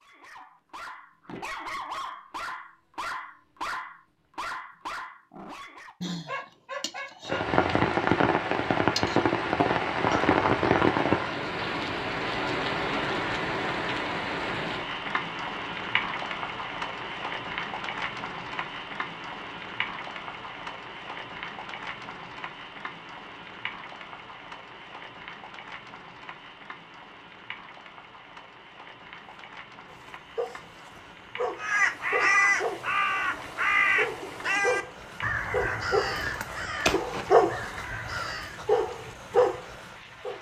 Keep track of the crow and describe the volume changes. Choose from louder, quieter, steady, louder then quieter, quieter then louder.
quieter.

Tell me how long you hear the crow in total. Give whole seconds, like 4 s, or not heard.
7 s.